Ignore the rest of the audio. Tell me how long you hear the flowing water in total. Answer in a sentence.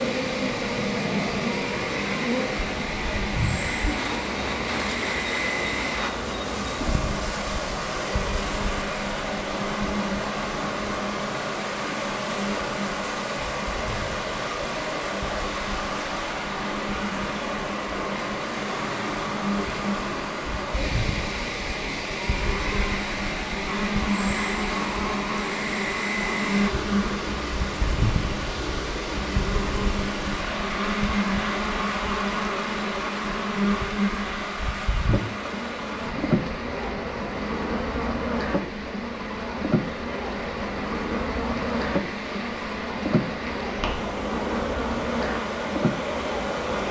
You can hear the flowing water for 47 seconds altogether.